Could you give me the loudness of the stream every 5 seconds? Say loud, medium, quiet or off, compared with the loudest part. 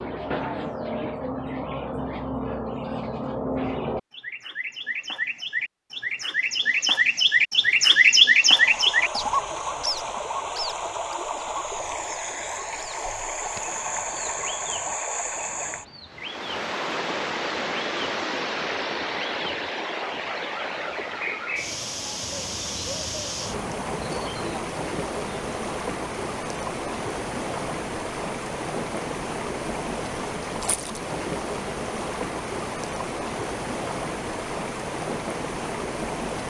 off, loud, loud, loud, loud, loud, loud, loud.